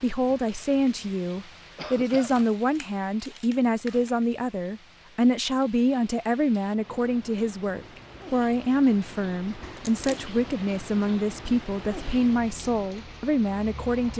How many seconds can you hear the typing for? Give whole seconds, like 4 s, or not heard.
not heard.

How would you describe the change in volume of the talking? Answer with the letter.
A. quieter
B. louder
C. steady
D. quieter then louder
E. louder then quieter
C.